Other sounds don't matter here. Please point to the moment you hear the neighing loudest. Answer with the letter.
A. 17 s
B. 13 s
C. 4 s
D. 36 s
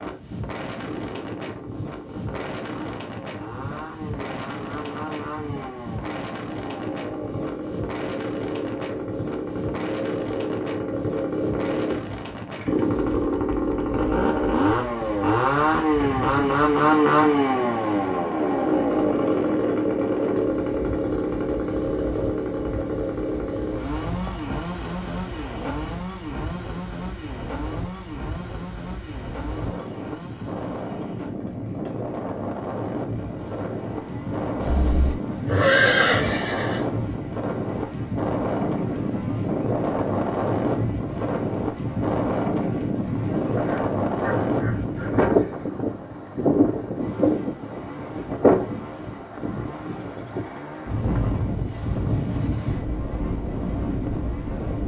D.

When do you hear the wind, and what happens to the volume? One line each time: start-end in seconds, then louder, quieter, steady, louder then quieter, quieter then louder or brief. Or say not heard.
0.0-54.8 louder.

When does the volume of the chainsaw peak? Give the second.
17 s.